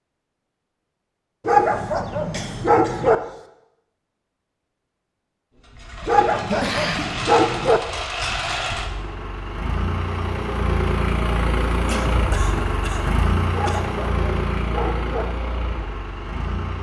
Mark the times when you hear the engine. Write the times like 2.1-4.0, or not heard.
5.5-16.7.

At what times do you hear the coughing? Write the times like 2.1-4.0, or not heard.
1.5-3.5, 6.5-7.2, 11.8-13.9.